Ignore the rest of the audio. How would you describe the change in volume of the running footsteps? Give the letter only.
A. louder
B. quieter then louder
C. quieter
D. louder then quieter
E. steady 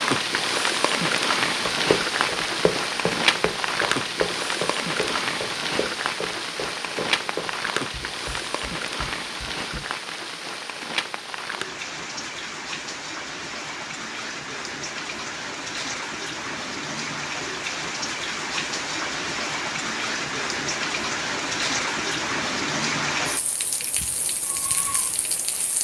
C.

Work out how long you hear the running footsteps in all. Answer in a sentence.
You can hear the running footsteps for 8 seconds altogether.